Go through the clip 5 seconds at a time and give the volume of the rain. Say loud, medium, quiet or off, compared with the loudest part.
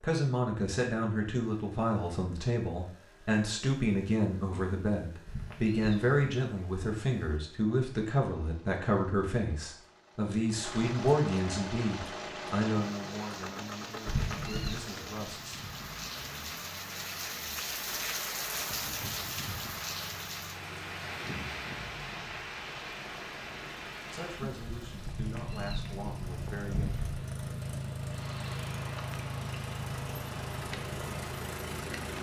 off, off, medium, loud, loud, medium, medium.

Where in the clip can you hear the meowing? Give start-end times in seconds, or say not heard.
5.2-6.3, 14.1-14.8, 25.1-27.1.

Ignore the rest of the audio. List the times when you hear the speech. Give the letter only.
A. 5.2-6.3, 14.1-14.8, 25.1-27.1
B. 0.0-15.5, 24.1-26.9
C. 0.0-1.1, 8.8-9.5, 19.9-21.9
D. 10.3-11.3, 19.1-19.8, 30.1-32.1
B.